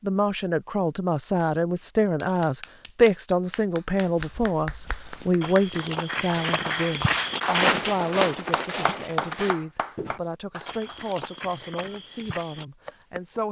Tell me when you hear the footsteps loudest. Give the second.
8 s.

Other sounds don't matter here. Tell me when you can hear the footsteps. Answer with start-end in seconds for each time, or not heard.
4.2-13.4.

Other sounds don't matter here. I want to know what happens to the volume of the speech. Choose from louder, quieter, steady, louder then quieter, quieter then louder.
quieter.